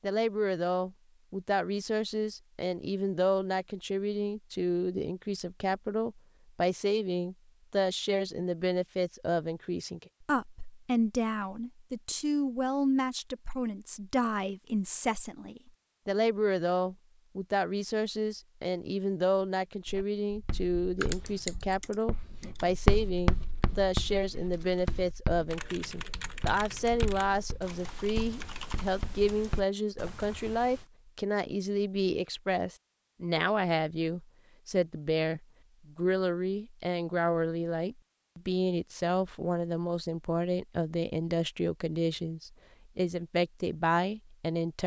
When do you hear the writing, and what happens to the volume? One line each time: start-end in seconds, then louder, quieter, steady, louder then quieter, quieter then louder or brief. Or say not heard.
19.9-29.6 louder then quieter.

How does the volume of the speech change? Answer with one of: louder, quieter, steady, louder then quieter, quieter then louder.
steady.